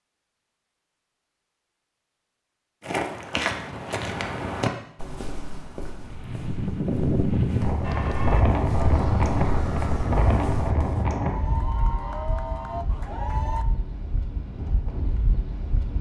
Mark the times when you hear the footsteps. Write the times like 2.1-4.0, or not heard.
2.8-11.1.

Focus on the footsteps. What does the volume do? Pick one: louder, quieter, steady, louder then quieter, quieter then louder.
quieter then louder.